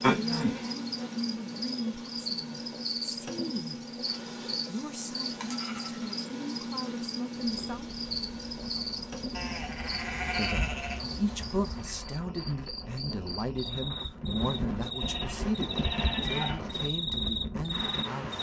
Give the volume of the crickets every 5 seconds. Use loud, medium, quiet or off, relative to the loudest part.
loud, loud, medium, loud.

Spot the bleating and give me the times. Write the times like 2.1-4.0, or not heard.
0.0-0.6, 4.6-6.1, 9.3-11.9, 14.0-16.6.